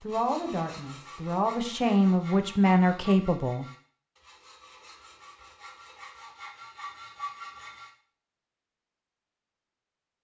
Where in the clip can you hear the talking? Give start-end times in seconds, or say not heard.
0.0-3.6.